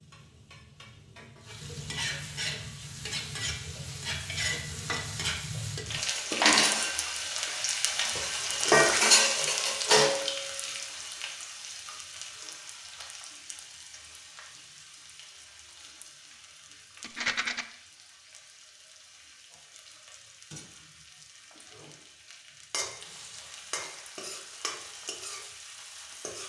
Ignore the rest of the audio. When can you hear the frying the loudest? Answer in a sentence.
The volume of the frying peaks at 9 seconds.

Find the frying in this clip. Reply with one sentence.
The frying can be heard from 0.0 to 26.4 s.